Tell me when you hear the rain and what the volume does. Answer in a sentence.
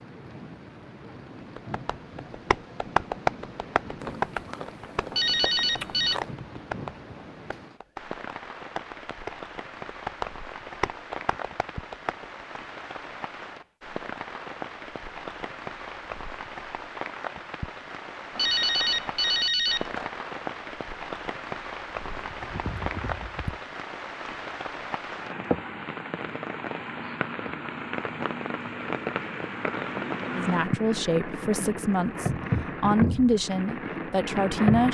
You can hear the rain from 0.0 to 34.8 s, getting louder.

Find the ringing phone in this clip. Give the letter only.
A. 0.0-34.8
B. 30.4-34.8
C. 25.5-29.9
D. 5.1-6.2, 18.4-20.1
D.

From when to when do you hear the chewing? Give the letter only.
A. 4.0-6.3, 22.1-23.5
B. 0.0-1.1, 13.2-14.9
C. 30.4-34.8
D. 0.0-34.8
A.